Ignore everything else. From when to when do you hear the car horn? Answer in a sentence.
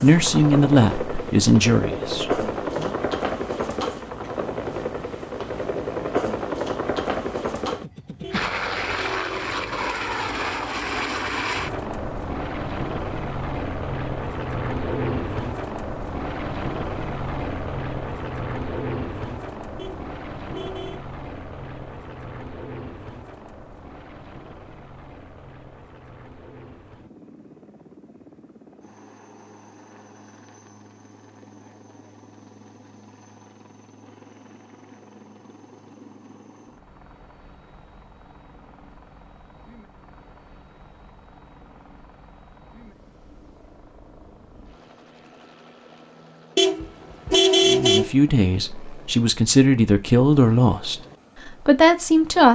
You can hear the car horn from 8.2 to 9.6 s, from 19.8 to 21.1 s and from 46.5 to 48.1 s.